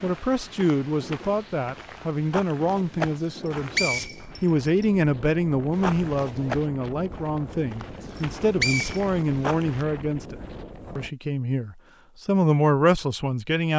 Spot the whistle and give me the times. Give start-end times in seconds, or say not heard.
3.3-4.8, 8.2-9.0.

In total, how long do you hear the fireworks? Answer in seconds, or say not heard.
not heard.